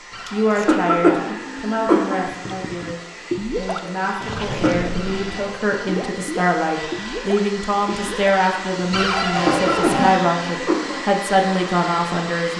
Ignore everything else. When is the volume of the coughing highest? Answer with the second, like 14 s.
1 s.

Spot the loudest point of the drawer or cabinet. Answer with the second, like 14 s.
10 s.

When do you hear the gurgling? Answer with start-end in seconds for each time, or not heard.
2.2-9.1.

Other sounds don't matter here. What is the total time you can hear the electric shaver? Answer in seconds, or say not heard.
not heard.